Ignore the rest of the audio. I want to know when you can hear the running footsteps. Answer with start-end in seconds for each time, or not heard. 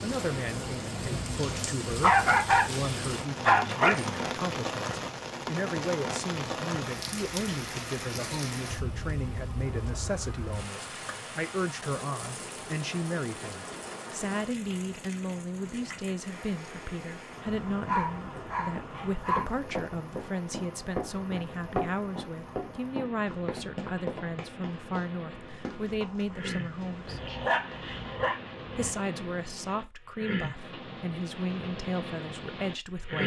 18.4-27.8.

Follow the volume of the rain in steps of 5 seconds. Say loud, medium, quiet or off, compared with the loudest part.
loud, loud, medium, medium, medium, medium, loud.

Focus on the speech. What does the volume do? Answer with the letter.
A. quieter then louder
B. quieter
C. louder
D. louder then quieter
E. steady
E.